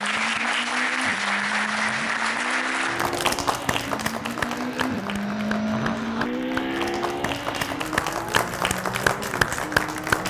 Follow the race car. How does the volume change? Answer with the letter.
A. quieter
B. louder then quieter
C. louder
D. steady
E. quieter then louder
B.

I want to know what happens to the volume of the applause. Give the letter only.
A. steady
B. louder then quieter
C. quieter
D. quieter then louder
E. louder
D.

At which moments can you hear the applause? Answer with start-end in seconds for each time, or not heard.
0.0-10.2.